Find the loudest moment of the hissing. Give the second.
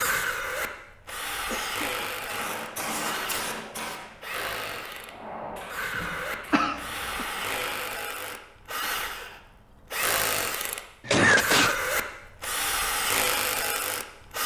3 s.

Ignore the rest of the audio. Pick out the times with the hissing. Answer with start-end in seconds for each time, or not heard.
2.2-7.9.